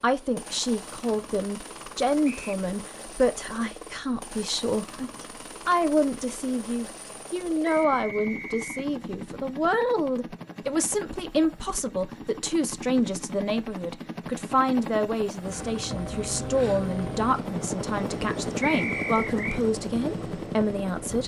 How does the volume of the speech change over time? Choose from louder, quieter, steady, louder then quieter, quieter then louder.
steady.